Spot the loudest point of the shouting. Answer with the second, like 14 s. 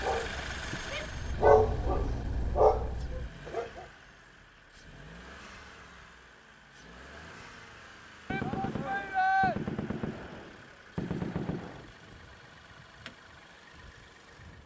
9 s.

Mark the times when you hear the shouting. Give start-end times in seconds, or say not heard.
0.8-1.6, 8.3-9.6.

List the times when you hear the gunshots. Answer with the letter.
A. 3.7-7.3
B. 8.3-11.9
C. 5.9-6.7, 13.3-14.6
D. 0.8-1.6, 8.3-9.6
B.